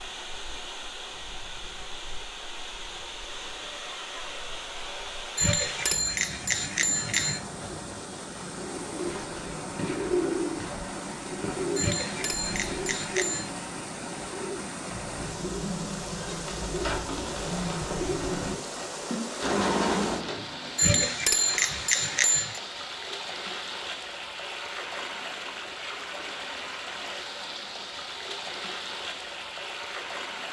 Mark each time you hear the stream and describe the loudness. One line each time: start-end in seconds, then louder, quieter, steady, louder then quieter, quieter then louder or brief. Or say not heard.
0.0-30.4 steady.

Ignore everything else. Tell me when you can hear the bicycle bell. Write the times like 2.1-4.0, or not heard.
5.3-7.4, 11.8-13.5, 20.8-22.6.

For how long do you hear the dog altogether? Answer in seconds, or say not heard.
not heard.